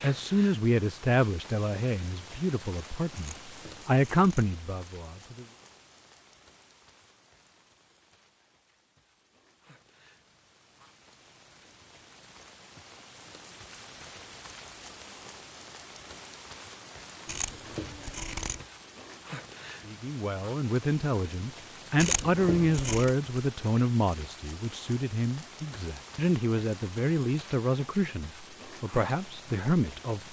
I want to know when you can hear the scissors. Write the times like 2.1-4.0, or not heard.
3.1-4.5, 17.2-18.6, 21.9-23.1.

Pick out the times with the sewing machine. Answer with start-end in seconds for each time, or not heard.
not heard.